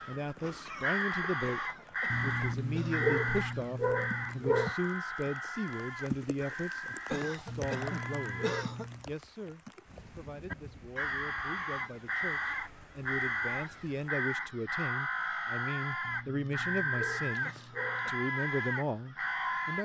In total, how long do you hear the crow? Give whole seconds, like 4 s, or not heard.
18 s.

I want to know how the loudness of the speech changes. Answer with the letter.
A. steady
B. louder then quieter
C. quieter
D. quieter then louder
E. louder
D.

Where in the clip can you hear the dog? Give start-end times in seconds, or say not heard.
2.1-4.8, 7.5-9.1, 16.0-18.1.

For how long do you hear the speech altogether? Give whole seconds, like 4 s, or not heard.
20 s.